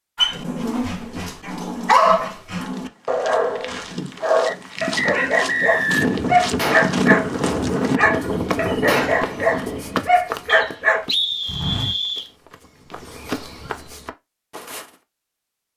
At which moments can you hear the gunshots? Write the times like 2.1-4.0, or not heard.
6.0-10.2.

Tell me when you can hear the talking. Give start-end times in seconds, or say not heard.
not heard.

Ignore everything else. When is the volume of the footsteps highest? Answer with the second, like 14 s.
7 s.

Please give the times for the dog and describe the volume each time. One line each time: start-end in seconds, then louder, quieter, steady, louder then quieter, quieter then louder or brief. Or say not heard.
0.1-11.1 steady.